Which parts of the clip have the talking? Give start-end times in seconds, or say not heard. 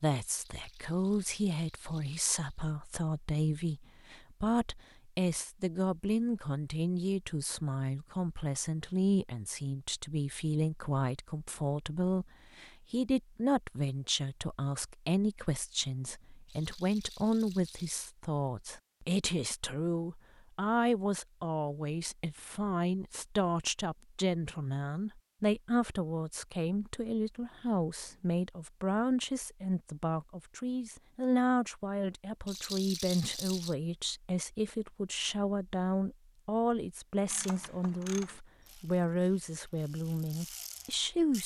0.0-41.4.